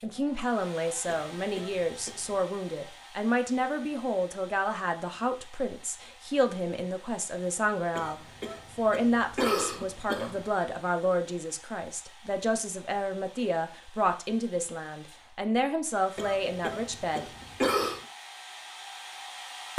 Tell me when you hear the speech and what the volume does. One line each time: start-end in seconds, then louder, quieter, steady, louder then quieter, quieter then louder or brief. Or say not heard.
0.0-17.2 steady.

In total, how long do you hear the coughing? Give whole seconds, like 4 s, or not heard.
6 s.